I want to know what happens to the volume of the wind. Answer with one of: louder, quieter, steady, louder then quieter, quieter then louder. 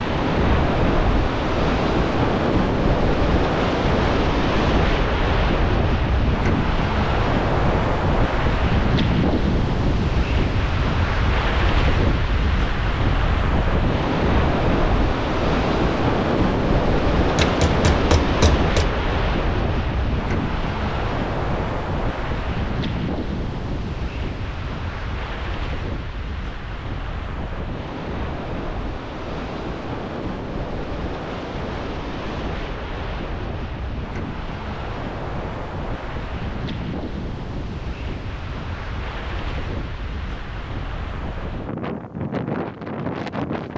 quieter.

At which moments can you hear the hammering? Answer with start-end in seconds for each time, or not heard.
17.4-18.9.